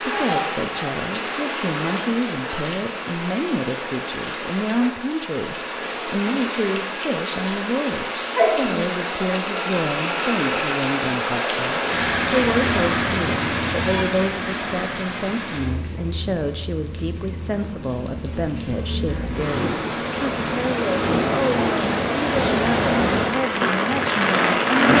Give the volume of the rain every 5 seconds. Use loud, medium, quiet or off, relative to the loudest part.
medium, medium, loud, medium, loud.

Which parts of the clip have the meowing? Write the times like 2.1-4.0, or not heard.
12.6-14.1.